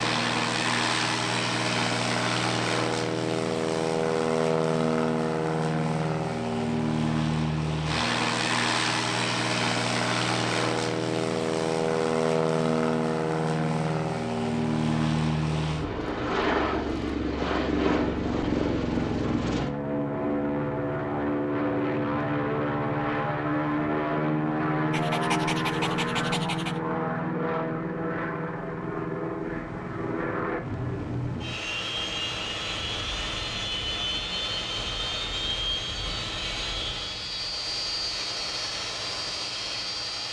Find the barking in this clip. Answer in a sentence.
The barking can be heard from 24.9 to 26.8 s.